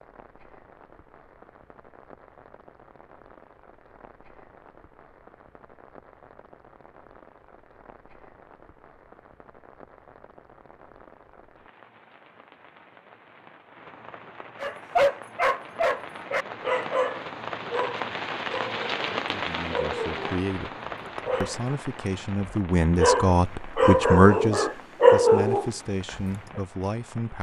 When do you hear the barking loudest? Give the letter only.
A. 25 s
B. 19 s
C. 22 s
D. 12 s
A.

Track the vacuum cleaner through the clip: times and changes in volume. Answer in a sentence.
You can't hear the vacuum cleaner here.